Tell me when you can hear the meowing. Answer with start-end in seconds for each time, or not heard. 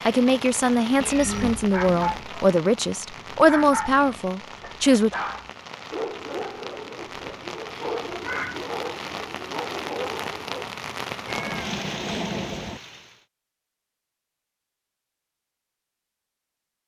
1.0-2.3, 8.2-8.7, 11.2-12.8.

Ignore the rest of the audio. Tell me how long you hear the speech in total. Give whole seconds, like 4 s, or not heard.
5 s.